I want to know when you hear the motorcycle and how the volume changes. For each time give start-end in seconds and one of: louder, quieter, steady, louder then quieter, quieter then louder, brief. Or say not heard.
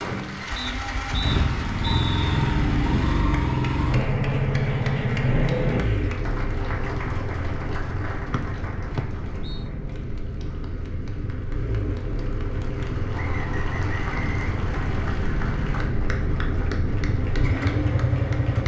0.0-18.6 quieter then louder.